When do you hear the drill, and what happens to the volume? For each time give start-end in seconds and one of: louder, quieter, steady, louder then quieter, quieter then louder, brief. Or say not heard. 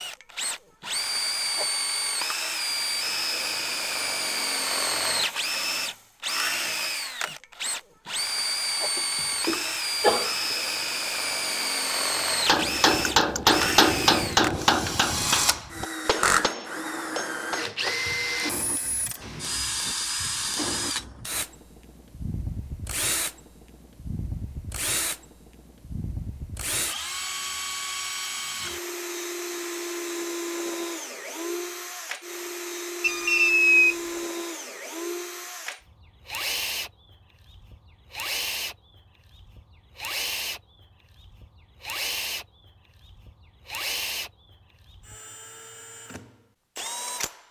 0.0-47.4 quieter.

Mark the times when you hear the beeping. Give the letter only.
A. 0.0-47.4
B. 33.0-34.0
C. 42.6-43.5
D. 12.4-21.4
B.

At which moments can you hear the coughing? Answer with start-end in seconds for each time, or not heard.
8.9-10.6.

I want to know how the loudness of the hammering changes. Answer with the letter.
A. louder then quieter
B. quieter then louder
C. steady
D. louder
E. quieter
E.